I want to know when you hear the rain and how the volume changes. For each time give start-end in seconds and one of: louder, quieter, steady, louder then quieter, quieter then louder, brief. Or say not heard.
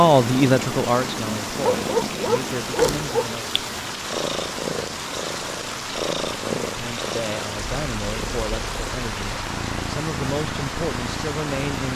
0.0-11.9 steady.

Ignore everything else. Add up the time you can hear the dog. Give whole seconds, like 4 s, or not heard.
2 s.